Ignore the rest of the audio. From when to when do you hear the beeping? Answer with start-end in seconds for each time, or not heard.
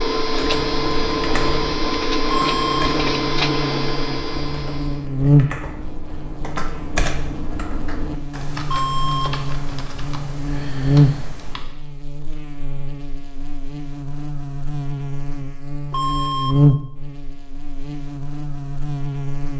2.2-2.9, 8.7-9.3, 15.9-16.6.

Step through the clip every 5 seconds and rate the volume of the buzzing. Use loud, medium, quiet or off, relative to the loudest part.
medium, loud, loud, loud.